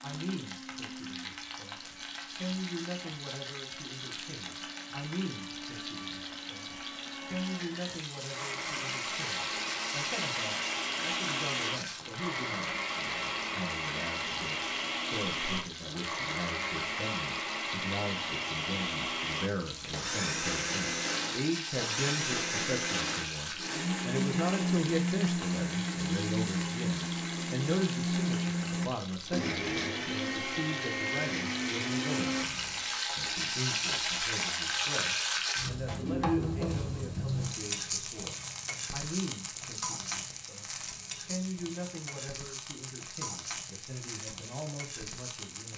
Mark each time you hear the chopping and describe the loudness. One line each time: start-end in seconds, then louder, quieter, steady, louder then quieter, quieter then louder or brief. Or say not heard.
not heard.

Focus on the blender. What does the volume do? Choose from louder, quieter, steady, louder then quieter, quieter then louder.
louder.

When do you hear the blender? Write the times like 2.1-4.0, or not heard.
0.0-33.0.